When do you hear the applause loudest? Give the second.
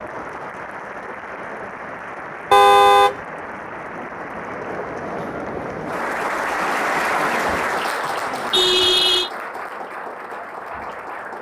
7 s.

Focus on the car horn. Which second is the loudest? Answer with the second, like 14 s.
3 s.